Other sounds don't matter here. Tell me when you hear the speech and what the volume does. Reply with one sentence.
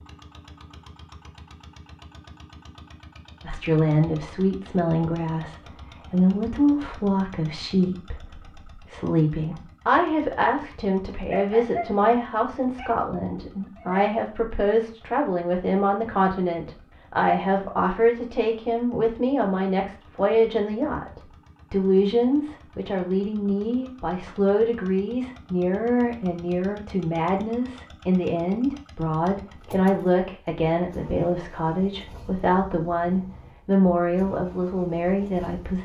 You can hear the speech from 3.5 to 35.8 s, at a steady volume.